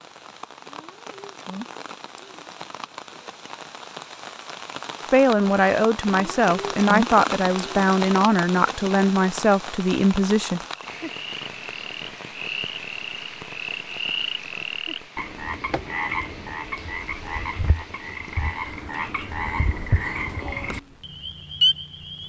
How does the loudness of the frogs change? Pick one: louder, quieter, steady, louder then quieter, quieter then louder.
louder.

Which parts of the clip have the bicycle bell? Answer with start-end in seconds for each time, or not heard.
not heard.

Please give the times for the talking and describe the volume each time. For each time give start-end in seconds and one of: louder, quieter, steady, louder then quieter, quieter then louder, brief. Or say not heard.
5.1-10.6 steady.